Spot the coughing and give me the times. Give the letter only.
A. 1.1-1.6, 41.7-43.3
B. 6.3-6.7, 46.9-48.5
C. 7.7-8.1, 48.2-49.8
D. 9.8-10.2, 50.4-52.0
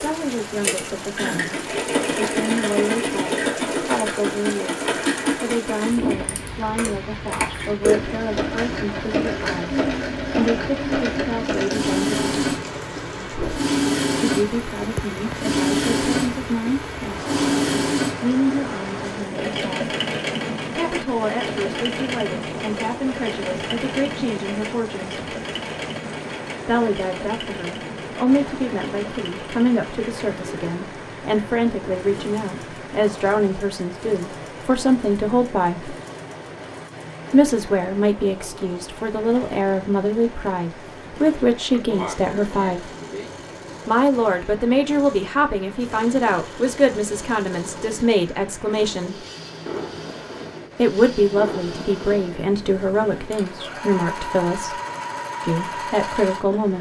A.